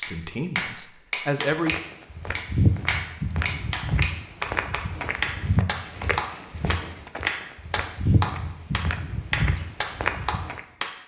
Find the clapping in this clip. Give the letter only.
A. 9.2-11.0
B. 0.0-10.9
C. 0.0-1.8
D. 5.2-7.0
B.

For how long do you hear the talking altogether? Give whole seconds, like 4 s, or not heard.
2 s.